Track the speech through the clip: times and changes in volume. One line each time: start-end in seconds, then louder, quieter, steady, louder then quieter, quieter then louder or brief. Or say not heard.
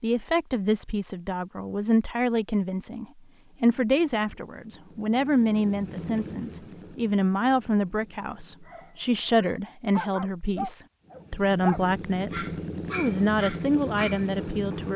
0.0-14.9 steady.